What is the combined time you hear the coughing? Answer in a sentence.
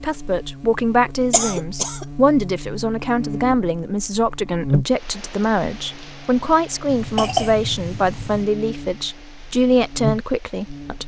You can hear the coughing for 2 seconds altogether.